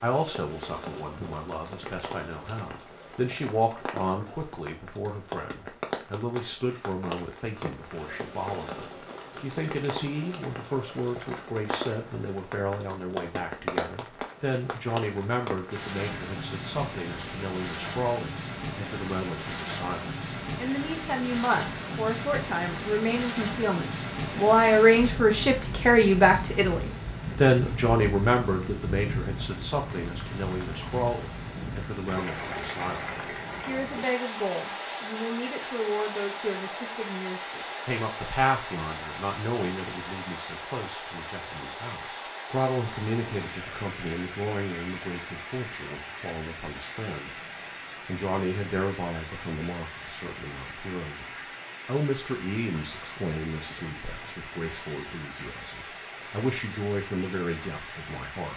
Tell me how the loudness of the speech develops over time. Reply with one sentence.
The loudness of the speech goes up, then down.